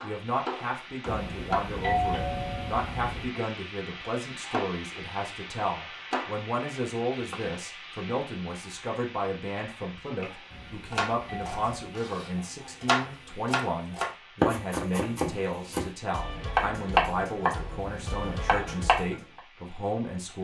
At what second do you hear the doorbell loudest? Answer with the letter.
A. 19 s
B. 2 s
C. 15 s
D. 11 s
B.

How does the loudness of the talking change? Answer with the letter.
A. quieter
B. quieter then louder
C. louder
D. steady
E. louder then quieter
D.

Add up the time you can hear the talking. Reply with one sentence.
You can hear the talking for 20 seconds altogether.